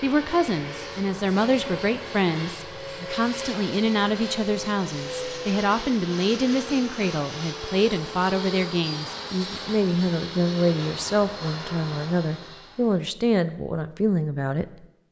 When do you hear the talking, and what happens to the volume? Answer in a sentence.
You can hear the talking from 0.0 to 14.8 s, at a steady volume.